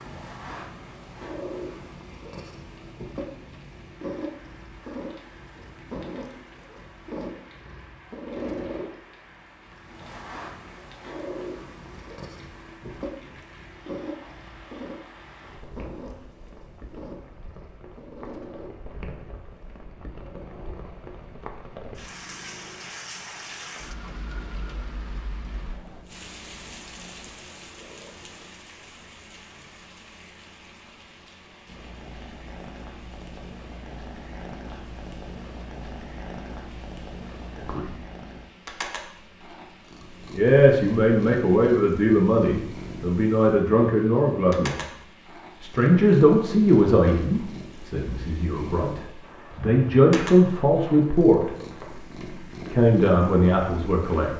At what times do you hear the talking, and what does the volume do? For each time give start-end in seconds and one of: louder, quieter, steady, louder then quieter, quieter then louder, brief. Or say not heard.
37.5-38.0 brief
40.4-44.8 steady
45.6-51.5 quieter then louder
52.7-54.3 brief.